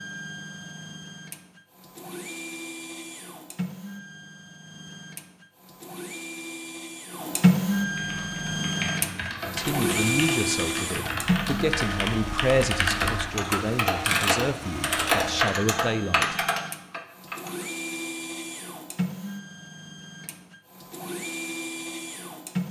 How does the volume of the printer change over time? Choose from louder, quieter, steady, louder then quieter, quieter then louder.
louder then quieter.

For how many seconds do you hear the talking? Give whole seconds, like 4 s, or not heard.
7 s.